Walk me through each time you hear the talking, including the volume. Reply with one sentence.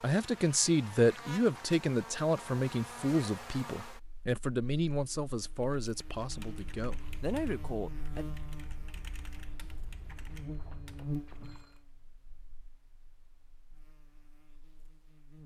The talking can be heard from 0.0 to 8.2 s, getting quieter.